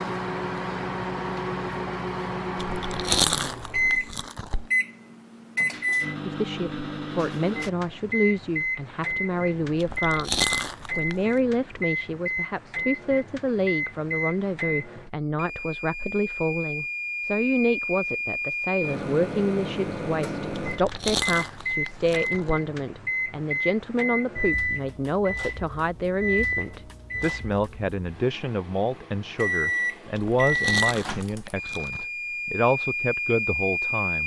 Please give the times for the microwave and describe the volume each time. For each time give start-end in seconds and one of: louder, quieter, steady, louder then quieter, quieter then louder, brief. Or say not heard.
0.0-34.2 steady.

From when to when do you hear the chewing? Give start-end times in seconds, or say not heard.
2.5-4.7, 9.8-11.2, 20.5-22.6, 30.1-32.0.